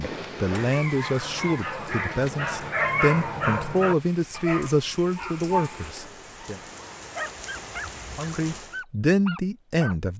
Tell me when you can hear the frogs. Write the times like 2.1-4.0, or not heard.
not heard.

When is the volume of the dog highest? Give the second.
3 s.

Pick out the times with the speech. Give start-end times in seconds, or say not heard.
0.0-6.6, 8.2-10.1.